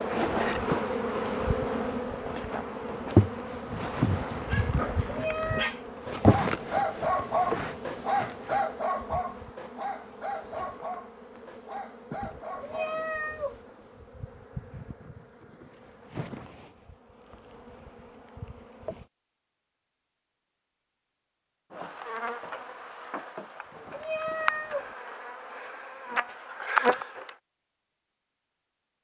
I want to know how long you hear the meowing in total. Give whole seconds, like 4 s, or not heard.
3 s.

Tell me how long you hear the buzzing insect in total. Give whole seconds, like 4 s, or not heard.
25 s.